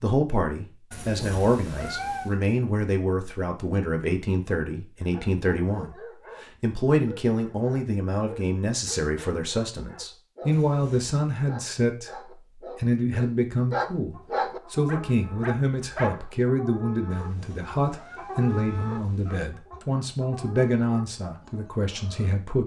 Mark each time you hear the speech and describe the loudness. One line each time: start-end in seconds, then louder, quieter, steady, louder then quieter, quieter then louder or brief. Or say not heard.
0.0-22.6 steady.